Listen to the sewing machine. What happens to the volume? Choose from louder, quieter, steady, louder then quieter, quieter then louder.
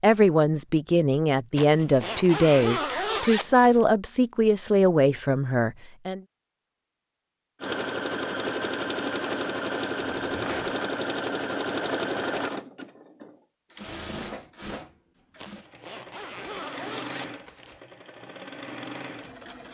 quieter.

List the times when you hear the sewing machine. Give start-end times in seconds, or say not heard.
7.6-19.6.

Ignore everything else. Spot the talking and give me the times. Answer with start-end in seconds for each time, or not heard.
0.0-6.2.